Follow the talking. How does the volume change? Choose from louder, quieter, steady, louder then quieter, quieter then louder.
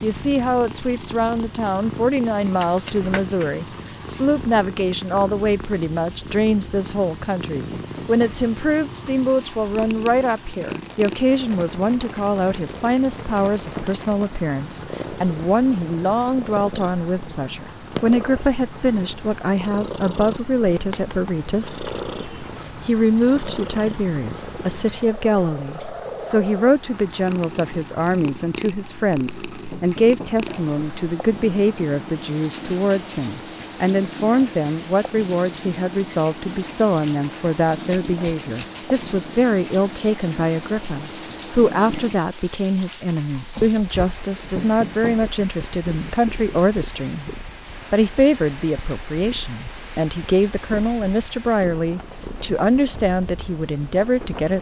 steady.